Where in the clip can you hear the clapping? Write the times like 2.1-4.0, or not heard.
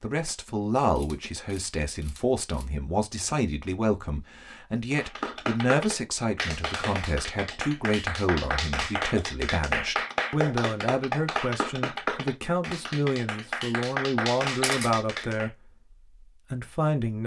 4.9-15.5.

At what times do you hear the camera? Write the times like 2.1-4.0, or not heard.
0.9-2.6, 14.6-15.0.